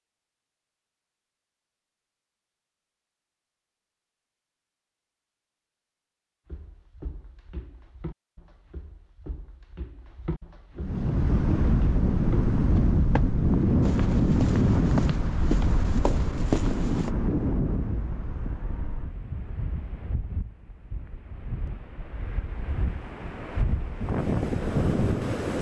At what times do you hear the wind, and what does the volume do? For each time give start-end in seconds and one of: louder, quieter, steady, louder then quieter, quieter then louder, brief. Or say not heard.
10.8-25.5 quieter then louder.